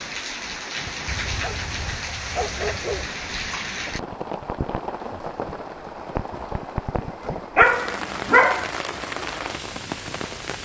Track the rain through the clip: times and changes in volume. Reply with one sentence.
You can hear the rain from 0.0 to 10.5 s, at a steady volume.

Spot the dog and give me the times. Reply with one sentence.
The dog can be heard from 1.1 to 3.1 s and from 7.5 to 8.7 s.